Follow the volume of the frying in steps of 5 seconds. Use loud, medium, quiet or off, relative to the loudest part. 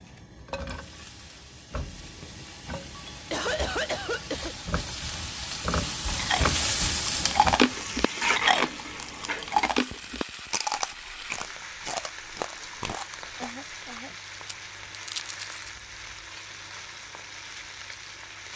medium, loud, medium, medium.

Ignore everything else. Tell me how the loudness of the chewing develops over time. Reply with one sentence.
The volume of the chewing goes down.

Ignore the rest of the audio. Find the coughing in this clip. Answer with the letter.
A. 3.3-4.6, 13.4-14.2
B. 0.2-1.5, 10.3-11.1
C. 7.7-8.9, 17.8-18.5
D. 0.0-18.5
A.